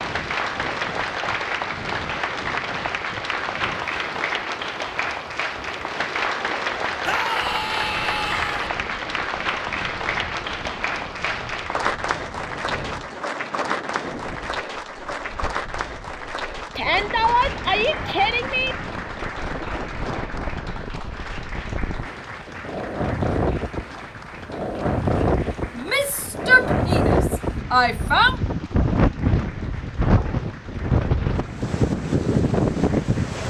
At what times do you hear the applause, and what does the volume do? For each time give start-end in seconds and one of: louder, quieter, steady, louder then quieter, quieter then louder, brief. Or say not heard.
0.0-33.2 quieter.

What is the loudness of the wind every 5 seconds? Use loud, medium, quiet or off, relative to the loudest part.
quiet, quiet, quiet, quiet, medium, loud, loud.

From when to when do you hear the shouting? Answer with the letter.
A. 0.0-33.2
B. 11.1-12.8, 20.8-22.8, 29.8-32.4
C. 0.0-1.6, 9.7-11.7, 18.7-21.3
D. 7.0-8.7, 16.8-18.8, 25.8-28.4
D.